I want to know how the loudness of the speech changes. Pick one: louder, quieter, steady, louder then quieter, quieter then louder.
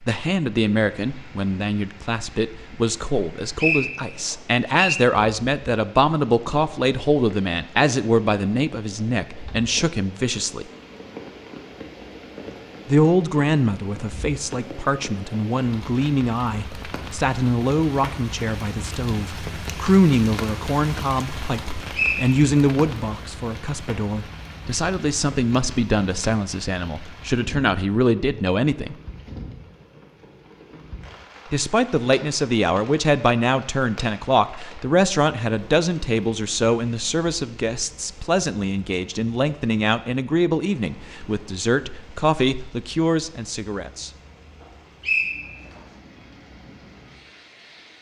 steady.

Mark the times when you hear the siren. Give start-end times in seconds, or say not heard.
not heard.